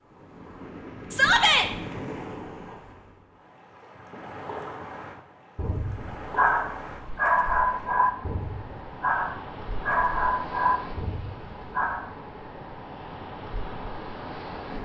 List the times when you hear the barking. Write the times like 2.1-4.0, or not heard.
5.5-12.1.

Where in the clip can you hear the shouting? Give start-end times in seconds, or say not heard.
1.1-1.7.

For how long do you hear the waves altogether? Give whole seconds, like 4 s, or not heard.
15 s.